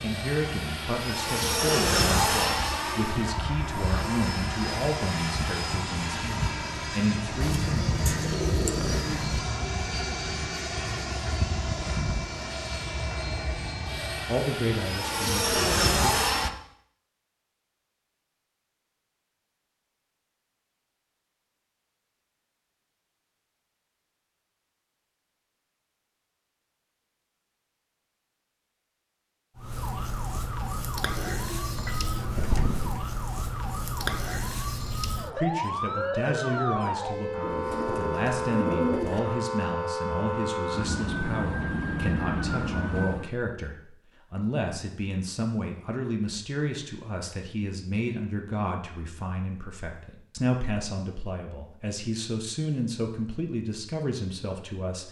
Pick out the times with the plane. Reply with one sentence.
You can hear the plane from 0.0 to 16.5 s.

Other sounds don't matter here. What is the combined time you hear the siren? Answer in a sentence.
The siren can be heard for 14 seconds in total.